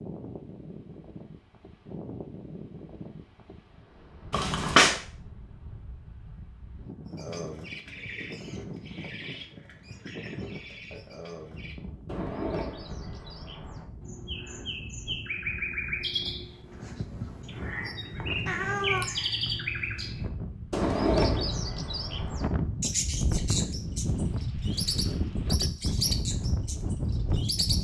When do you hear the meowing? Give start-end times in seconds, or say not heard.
4.3-5.0, 18.4-19.1.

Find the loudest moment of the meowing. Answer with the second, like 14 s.
5 s.